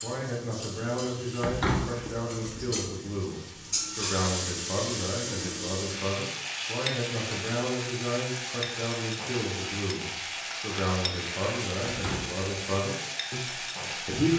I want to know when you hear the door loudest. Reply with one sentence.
The loudest moment of the door is at 2 seconds.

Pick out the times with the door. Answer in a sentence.
The door can be heard from 1.4 to 2.8 s and from 11.8 to 12.5 s.